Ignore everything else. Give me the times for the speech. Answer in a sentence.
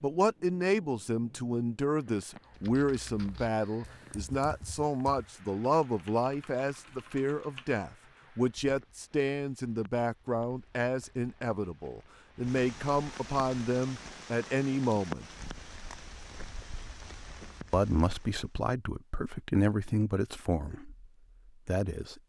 The speech can be heard from 0.0 to 15.2 s and from 17.7 to 22.2 s.